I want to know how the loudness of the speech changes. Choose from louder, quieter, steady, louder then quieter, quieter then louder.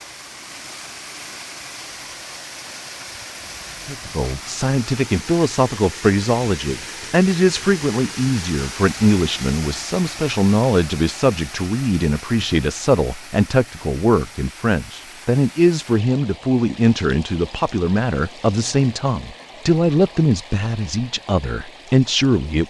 steady.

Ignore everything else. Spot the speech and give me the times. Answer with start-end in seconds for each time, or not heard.
3.9-22.6.